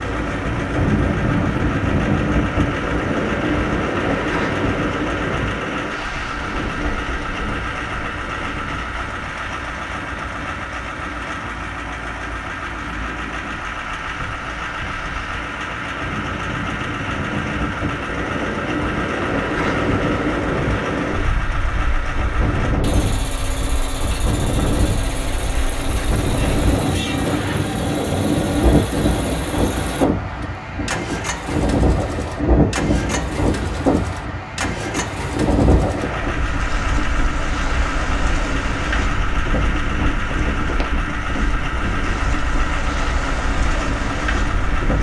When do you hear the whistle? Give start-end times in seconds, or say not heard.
not heard.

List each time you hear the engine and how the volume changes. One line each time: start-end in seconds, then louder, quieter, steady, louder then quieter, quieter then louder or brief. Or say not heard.
0.0-44.9 steady.